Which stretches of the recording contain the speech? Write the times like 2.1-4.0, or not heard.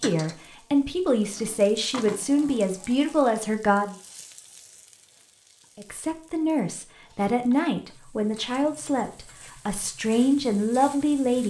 0.0-4.0, 5.8-11.4.